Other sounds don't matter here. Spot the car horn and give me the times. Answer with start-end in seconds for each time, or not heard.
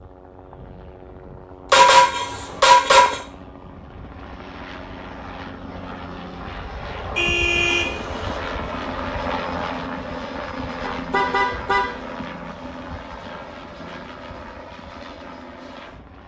1.7-3.2, 7.2-8.4, 10.8-11.9.